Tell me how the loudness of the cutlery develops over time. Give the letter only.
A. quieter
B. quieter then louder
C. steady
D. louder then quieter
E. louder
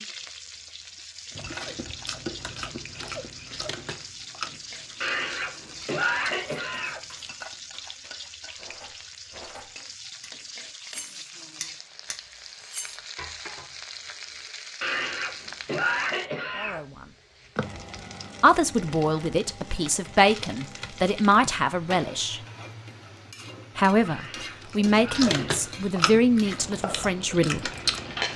E.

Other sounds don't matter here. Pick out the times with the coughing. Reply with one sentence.
The coughing can be heard from 5.0 to 7.0 s, from 14.8 to 16.8 s and from 24.1 to 25.9 s.